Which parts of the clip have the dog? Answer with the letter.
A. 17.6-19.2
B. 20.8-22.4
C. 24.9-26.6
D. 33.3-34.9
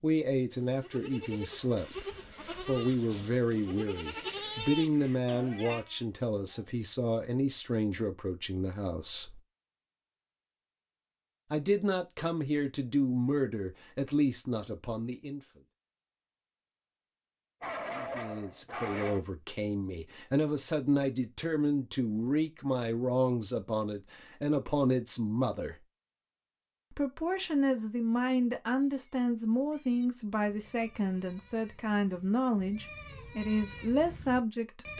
A.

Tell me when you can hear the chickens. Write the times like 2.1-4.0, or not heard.
not heard.